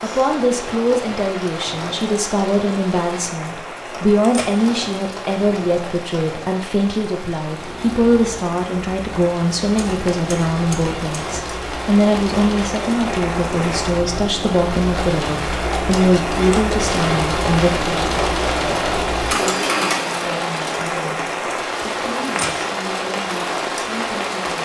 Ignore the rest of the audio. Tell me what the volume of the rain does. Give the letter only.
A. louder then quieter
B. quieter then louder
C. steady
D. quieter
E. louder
E.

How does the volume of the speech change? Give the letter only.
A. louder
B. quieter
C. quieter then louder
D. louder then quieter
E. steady
B.